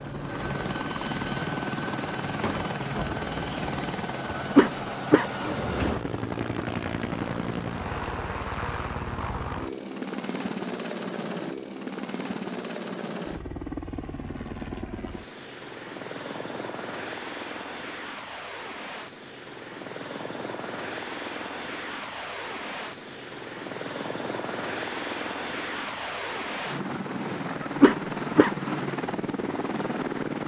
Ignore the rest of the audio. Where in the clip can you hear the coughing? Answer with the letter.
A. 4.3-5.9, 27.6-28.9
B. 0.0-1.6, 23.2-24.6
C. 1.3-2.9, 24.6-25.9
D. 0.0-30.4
A.